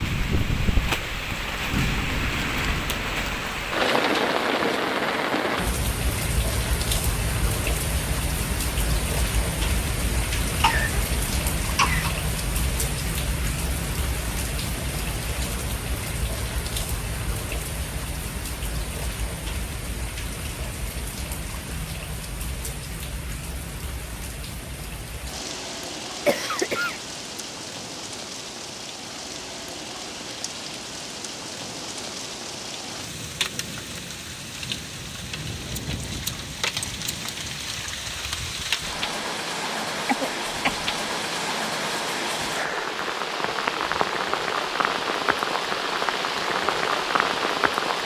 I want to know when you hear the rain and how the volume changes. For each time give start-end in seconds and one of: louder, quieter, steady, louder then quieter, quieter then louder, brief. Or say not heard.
0.0-48.0 quieter then louder.